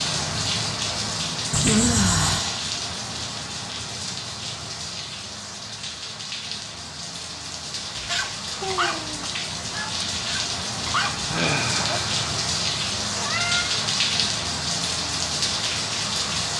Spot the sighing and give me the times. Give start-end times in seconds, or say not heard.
1.6-2.6, 8.5-9.2, 11.2-12.1.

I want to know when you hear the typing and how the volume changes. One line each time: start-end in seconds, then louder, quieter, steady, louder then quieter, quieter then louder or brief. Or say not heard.
not heard.